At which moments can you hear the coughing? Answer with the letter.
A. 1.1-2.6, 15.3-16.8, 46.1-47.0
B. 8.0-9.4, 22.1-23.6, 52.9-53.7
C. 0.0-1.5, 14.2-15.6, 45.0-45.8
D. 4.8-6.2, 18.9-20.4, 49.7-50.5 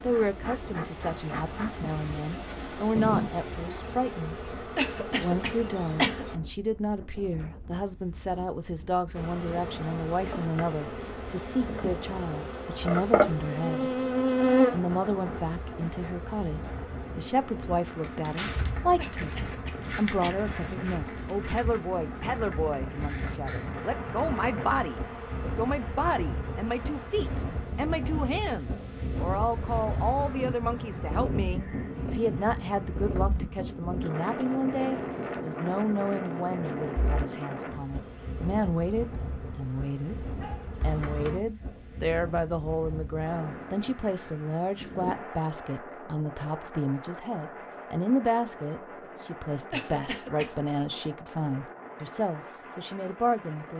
D.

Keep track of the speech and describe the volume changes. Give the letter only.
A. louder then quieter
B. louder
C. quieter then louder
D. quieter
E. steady
E.